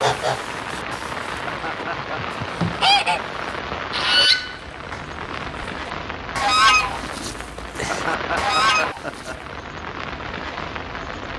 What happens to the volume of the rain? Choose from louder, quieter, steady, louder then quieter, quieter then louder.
steady.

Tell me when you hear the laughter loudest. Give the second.
8 s.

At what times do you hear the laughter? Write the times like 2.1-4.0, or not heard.
1.2-2.2, 7.7-9.3.